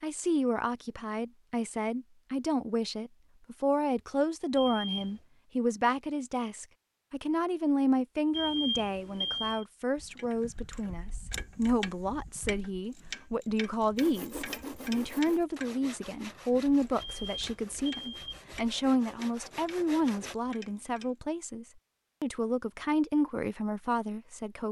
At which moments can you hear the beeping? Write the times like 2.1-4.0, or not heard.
4.5-5.2, 8.3-9.7, 17.0-18.4.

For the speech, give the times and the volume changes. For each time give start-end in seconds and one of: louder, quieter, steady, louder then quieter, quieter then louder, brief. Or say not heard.
0.0-24.6 steady.